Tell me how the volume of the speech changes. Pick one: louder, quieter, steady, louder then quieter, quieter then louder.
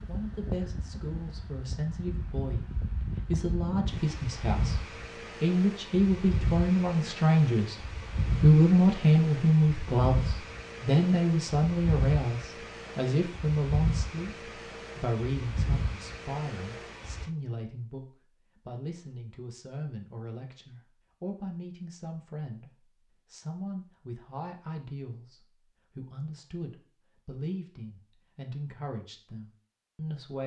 louder then quieter.